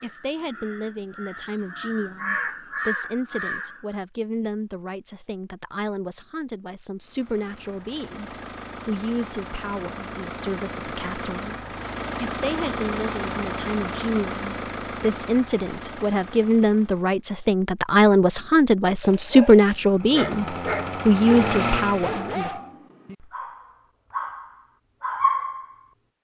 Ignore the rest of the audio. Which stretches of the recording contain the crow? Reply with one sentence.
The crow can be heard from 0.0 to 4.0 s.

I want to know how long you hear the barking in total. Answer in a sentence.
The barking can be heard for 7 seconds in total.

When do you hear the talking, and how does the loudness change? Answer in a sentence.
You can hear the talking from 0.0 to 22.6 s, getting louder.